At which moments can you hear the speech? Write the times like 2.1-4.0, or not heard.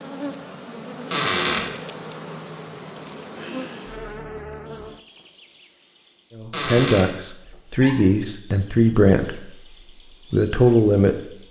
6.3-9.5, 10.3-11.2.